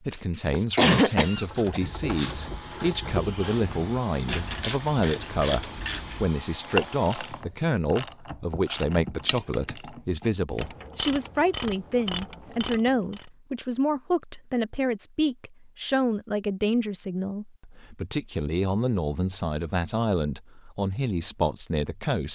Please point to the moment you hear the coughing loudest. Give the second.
1 s.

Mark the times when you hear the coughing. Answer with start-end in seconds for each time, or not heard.
0.1-2.4.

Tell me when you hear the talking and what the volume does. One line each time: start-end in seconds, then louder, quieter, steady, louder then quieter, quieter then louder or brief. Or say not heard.
0.0-22.3 steady.